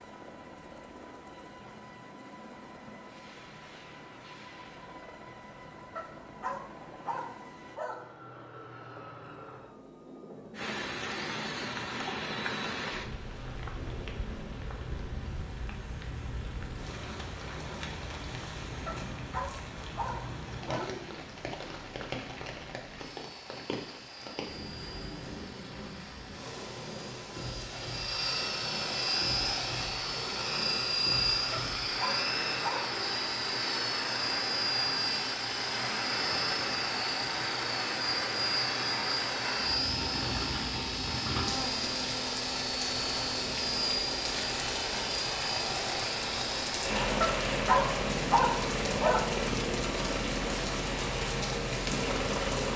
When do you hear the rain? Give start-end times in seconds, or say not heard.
10.6-52.7.